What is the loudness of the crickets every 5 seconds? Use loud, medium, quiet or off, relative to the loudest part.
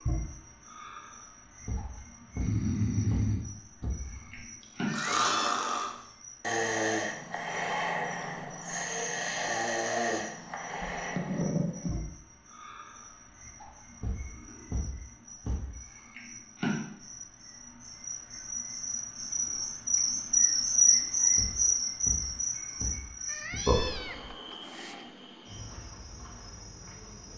quiet, quiet, quiet, medium, loud, quiet.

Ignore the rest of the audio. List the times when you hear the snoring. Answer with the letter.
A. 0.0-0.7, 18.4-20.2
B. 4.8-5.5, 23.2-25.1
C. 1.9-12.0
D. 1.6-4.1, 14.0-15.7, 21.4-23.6
C.